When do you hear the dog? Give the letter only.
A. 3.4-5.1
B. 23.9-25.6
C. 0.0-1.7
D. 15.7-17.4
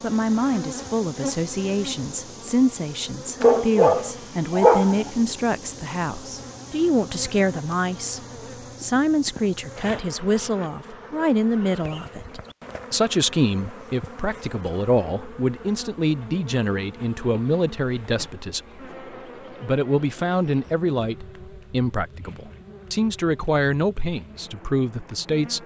A.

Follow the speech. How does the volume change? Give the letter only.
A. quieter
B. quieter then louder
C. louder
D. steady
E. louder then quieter
D.